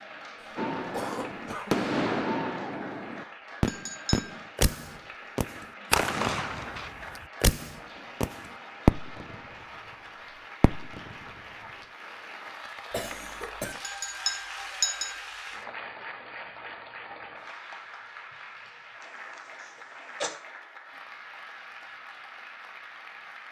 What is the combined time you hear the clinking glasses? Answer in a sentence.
The clinking glasses can be heard for 2 seconds in total.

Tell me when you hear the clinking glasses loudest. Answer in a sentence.
The volume of the clinking glasses peaks at 15 seconds.